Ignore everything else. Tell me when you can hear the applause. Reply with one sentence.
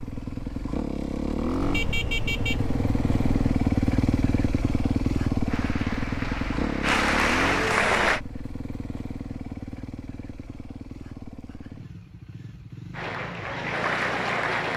You can hear the applause from 5.5 to 8.2 s and from 12.9 to 14.7 s.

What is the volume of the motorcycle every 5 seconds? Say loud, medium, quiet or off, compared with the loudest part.
loud, loud, quiet.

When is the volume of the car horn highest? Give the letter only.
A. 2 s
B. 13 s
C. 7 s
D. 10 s
A.